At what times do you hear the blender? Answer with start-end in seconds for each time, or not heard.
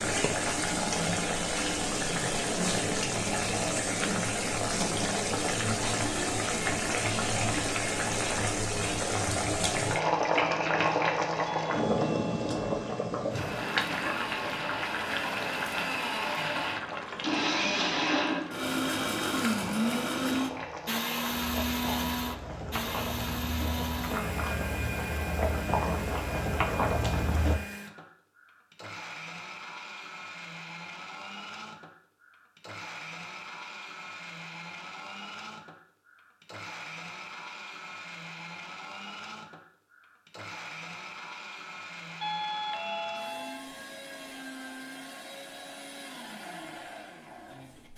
13.3-47.9.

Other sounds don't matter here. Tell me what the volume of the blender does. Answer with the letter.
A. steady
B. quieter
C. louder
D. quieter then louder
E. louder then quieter
B.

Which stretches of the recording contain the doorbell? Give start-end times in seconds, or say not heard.
11.7-13.1, 42.2-43.7.